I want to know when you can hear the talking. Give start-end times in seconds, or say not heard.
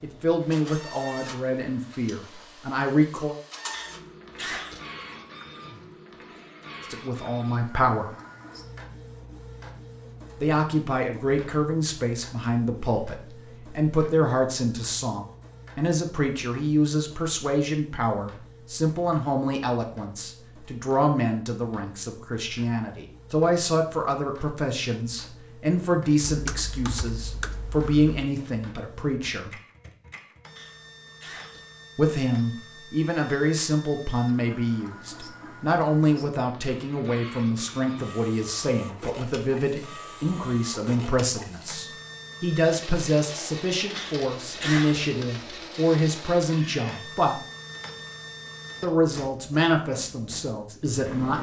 0.0-3.4, 6.9-8.2, 10.4-29.5, 31.9-47.4, 48.8-51.3.